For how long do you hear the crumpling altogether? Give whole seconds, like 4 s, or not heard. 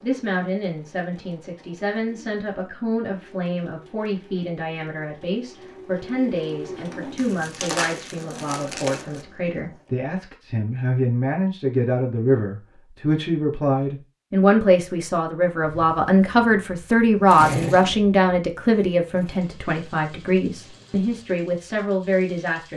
2 s.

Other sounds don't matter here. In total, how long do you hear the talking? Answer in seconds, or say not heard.
23 s.